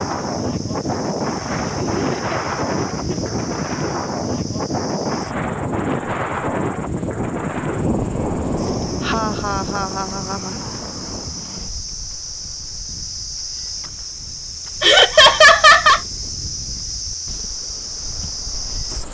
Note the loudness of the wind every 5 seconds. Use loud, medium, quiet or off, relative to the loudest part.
loud, loud, quiet, quiet.